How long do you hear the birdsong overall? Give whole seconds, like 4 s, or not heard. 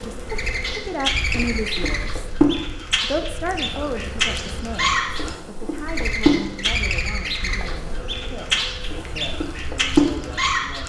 11 s.